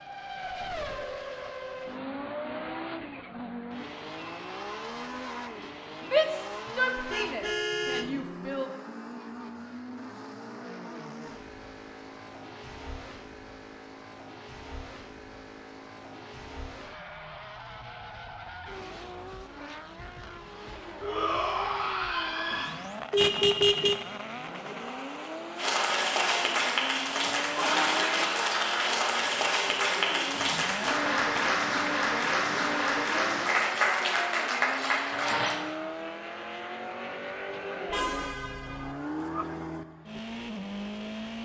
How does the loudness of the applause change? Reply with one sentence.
The volume of the applause stays about the same.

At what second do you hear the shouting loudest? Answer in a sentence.
The loudest moment of the shouting is at 6 seconds.